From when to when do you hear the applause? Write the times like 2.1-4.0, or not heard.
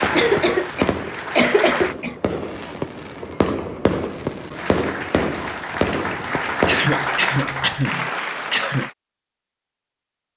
0.0-1.9, 4.5-8.9.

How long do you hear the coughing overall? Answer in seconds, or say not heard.
4 s.